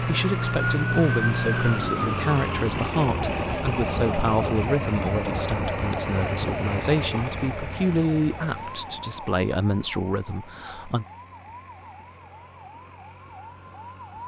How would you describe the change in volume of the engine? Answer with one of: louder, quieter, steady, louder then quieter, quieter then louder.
quieter.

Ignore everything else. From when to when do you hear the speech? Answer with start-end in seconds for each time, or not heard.
0.0-11.1.